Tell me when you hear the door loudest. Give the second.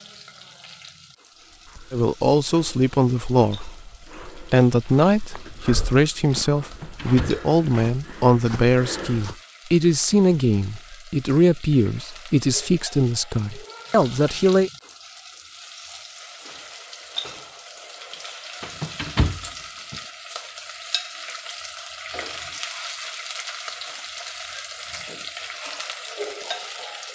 19 s.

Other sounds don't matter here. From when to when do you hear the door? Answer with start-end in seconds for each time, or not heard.
6.6-7.5, 18.6-20.0.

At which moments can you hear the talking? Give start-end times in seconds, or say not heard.
1.9-14.7.